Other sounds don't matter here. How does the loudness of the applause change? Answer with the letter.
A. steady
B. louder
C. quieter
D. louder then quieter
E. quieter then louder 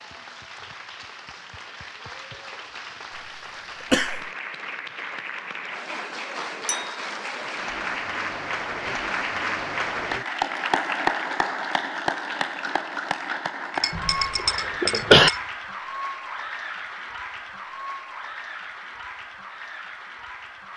D.